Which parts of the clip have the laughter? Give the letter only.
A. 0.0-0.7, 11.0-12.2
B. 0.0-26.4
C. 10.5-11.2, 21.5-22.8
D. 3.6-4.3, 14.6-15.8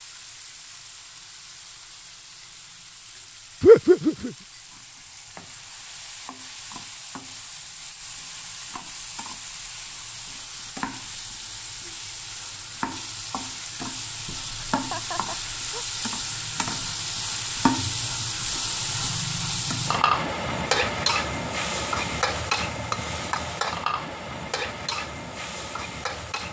D.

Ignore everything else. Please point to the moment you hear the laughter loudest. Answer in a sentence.
The volume of the laughter peaks at 4 seconds.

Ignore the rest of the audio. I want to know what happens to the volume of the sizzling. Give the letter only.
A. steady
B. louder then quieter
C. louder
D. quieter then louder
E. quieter
C.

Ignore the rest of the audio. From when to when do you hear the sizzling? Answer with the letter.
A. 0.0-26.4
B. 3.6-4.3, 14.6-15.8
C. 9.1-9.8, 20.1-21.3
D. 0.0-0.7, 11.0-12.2
A.